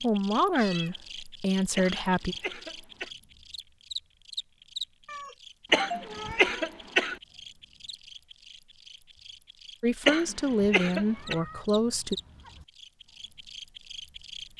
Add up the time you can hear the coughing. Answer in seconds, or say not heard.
4 s.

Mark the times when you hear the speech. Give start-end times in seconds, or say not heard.
0.0-2.4, 9.8-12.2.